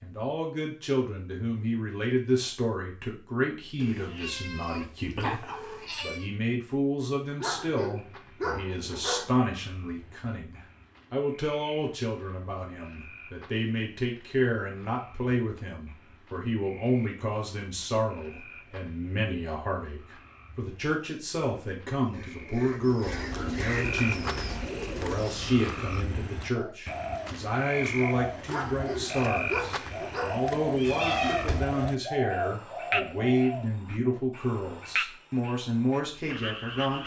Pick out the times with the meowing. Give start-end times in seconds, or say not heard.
3.8-6.2, 30.5-31.8.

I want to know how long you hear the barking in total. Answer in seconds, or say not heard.
4 s.